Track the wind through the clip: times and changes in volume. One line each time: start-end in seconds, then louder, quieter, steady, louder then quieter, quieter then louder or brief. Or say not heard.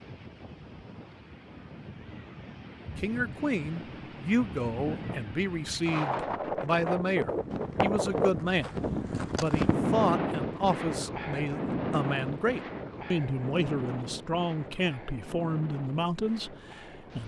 0.0-17.2 louder then quieter.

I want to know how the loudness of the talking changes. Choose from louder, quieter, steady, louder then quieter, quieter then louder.
steady.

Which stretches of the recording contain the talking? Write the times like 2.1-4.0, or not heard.
3.0-8.7, 9.3-17.2.